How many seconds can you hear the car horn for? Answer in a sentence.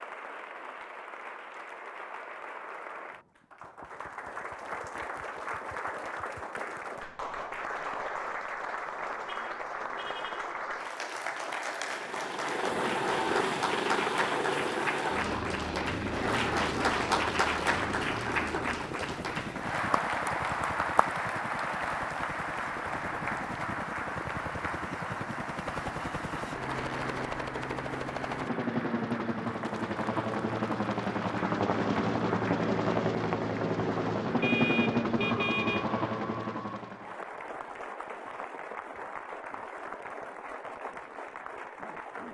The car horn can be heard for 3 seconds in total.